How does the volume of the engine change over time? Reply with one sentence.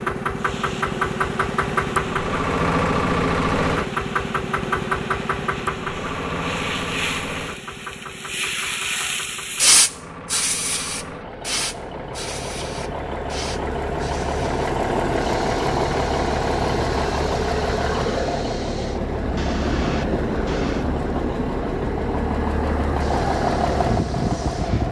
The volume of the engine goes down, then up.